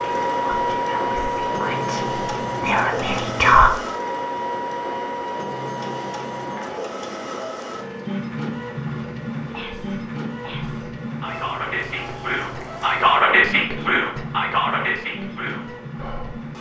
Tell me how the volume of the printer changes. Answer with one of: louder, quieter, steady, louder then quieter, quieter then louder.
quieter.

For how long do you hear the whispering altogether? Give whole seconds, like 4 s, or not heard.
10 s.